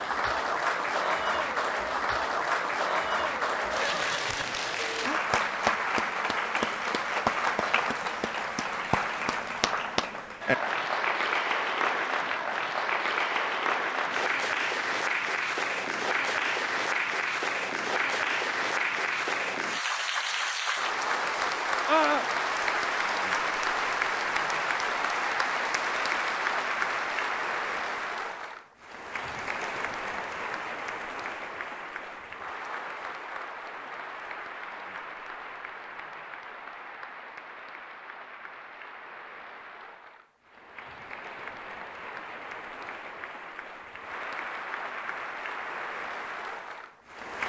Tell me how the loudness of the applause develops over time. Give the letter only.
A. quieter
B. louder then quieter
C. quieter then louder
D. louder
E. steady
A.